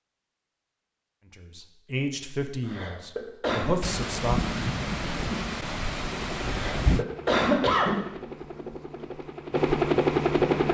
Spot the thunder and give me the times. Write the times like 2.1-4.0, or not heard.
3.8-7.0.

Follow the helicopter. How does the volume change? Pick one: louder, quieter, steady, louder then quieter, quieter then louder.
louder.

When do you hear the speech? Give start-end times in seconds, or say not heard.
1.2-4.5.